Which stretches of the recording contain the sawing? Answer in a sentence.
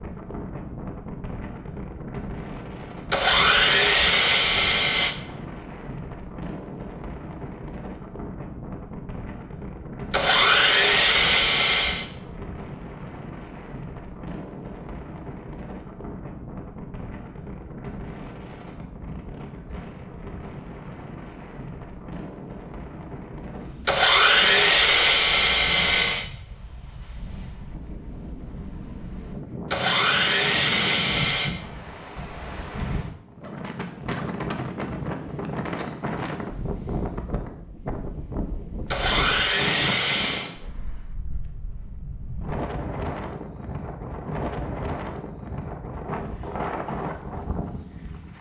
The sawing can be heard from 3.1 to 5.2 s, from 10.1 to 12.1 s, from 23.9 to 26.3 s, from 29.7 to 31.6 s and from 38.9 to 40.5 s.